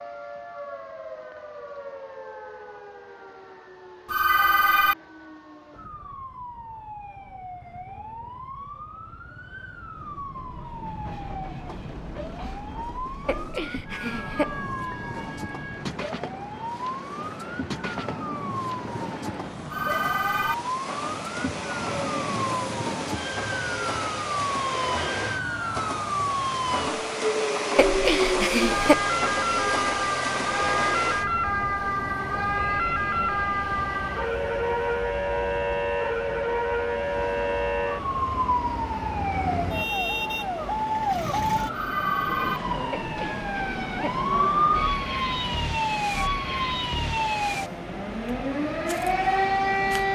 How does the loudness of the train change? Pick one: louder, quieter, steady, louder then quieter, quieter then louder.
louder then quieter.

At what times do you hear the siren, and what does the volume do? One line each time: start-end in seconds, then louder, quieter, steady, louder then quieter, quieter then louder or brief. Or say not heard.
0.0-50.1 louder.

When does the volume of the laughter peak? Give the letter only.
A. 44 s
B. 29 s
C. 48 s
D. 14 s
B.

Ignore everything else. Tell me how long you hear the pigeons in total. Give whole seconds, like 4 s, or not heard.
not heard.